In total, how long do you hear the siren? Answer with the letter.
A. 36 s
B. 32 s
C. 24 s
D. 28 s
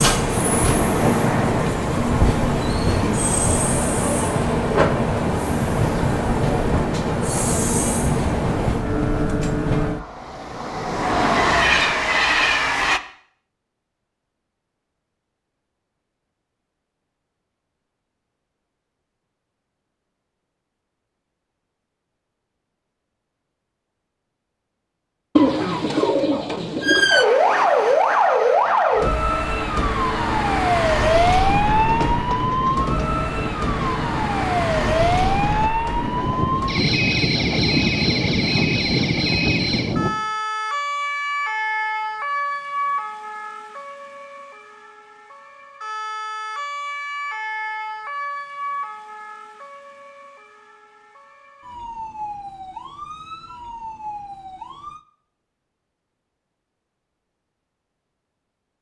D.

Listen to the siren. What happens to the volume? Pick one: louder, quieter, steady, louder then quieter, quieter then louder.
quieter.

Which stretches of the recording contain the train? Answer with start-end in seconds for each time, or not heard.
0.0-13.0, 31.4-40.1.